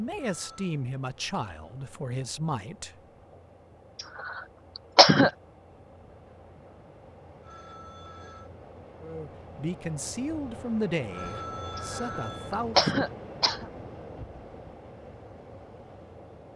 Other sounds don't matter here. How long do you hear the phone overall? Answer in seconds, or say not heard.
3 s.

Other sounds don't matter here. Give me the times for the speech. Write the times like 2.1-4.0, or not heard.
0.0-3.4, 9.0-12.9.